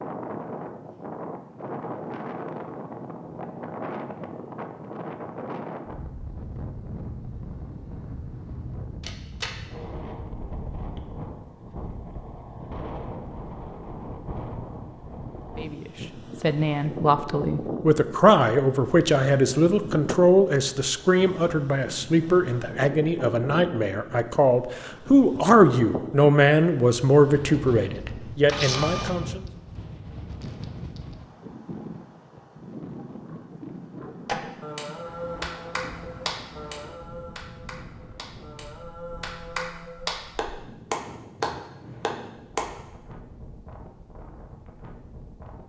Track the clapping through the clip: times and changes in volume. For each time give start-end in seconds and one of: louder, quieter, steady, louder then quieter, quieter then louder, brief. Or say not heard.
34.2-42.7 quieter then louder.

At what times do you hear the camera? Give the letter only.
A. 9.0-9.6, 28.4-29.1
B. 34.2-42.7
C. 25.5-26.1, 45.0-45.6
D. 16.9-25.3
A.